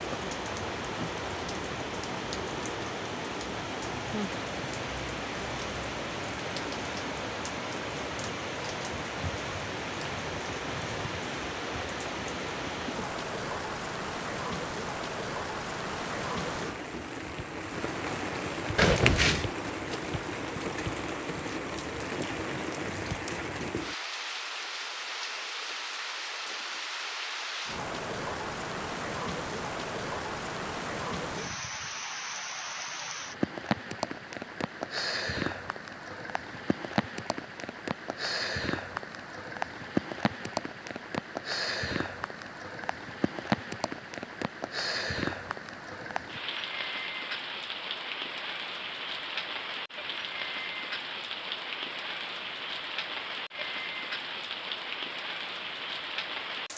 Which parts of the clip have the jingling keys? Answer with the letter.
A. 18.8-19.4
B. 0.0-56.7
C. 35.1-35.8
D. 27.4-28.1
A.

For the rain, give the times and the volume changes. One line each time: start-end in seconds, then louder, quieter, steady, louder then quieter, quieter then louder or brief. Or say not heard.
0.0-56.7 steady.